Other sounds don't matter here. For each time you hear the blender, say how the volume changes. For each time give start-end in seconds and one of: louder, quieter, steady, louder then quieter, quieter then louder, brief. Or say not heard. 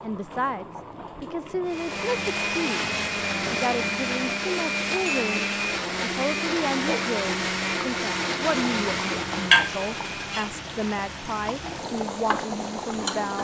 1.6-13.4 quieter.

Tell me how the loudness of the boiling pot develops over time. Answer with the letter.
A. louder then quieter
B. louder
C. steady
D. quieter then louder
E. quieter
A.